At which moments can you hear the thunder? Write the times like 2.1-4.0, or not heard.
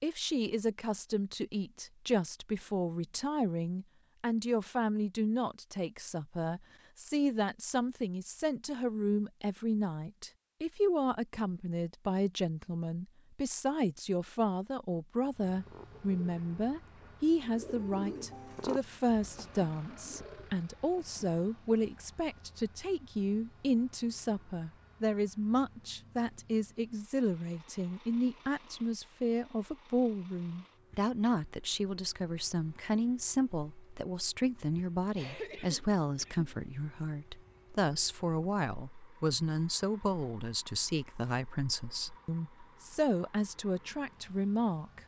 not heard.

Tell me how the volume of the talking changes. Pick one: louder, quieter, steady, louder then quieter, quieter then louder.
steady.